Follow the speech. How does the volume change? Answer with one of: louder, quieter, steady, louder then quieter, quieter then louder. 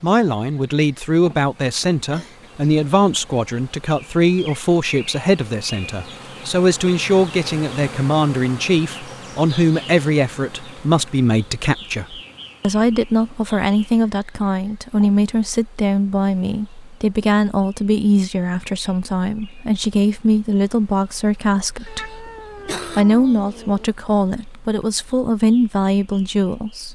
steady.